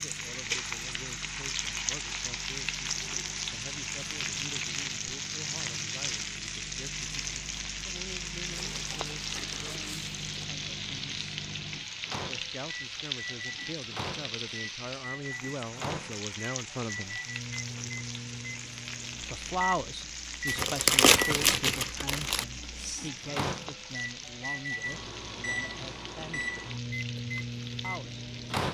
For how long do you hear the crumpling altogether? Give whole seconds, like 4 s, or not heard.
4 s.